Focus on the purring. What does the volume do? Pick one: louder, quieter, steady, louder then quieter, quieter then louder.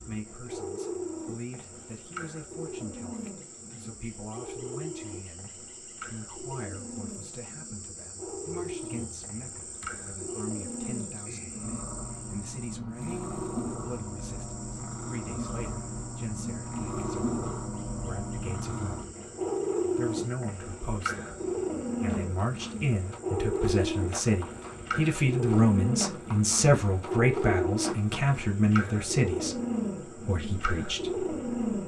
louder.